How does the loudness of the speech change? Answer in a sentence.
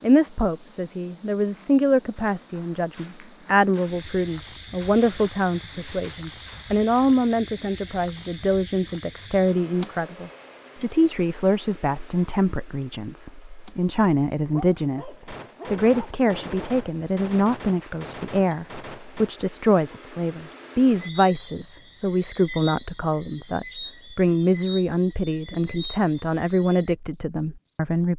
The volume of the speech stays about the same.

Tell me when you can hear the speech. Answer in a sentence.
You can hear the speech from 0.0 to 28.1 s.